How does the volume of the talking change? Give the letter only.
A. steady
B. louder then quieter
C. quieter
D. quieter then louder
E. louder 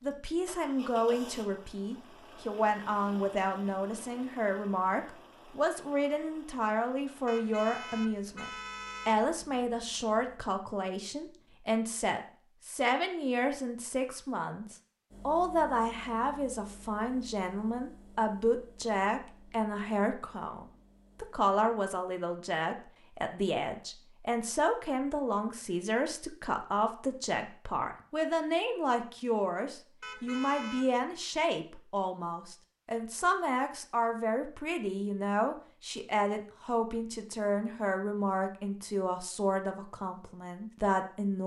A.